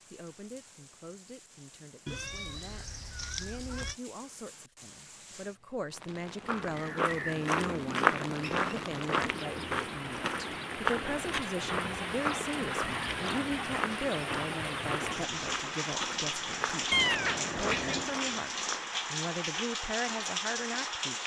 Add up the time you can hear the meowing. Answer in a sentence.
The meowing can be heard for 3 seconds in total.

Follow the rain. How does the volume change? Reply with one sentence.
The volume of the rain goes up.